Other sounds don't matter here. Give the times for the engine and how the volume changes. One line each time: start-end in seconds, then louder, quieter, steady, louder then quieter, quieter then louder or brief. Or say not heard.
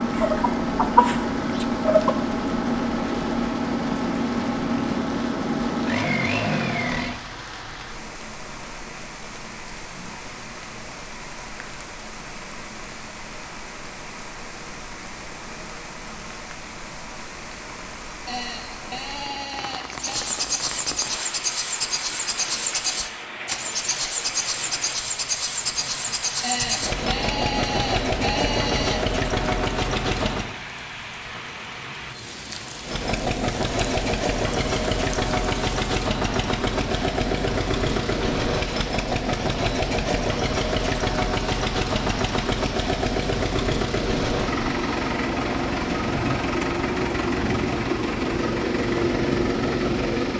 0.0-7.2 steady
19.9-30.6 steady
32.8-50.3 steady.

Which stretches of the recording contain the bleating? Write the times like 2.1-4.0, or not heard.
18.2-20.3, 26.4-29.1.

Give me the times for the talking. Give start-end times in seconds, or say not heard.
not heard.